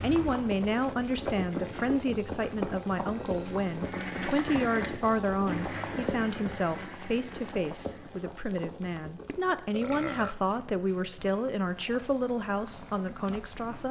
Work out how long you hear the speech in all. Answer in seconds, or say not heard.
14 s.